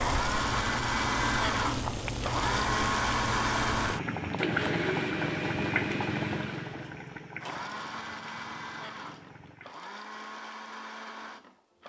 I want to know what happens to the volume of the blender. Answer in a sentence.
The volume of the blender goes down.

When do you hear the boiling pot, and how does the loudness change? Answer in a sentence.
The boiling pot can be heard from 0.0 to 9.8 s, getting quieter.